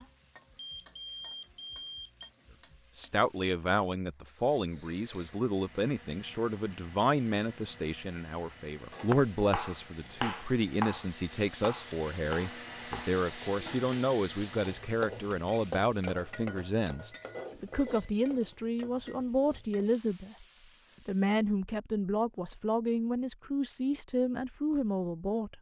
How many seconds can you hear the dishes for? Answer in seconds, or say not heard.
not heard.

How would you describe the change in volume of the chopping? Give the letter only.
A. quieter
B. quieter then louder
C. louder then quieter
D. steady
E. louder
A.